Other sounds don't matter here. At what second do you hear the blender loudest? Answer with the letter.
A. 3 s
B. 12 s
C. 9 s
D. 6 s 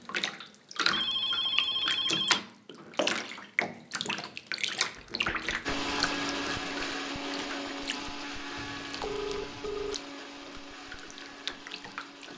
D.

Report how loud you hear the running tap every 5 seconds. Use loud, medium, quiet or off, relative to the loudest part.
loud, medium, medium.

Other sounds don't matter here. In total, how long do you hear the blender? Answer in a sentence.
The blender can be heard for 7 seconds in total.